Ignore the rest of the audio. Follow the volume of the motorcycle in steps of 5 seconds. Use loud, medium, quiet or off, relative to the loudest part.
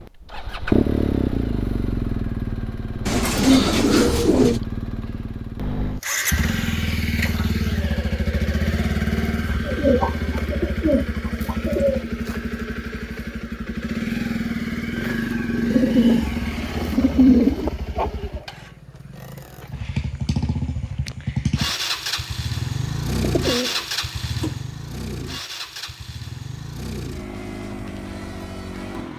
loud, loud, loud, loud, loud, medium.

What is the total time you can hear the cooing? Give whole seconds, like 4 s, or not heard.
7 s.